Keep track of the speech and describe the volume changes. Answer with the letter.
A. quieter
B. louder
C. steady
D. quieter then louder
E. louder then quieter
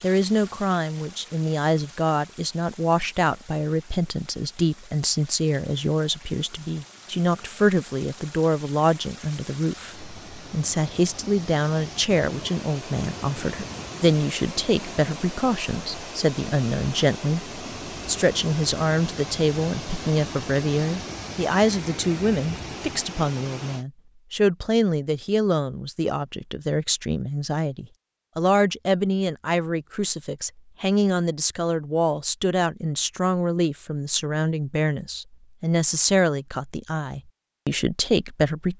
C.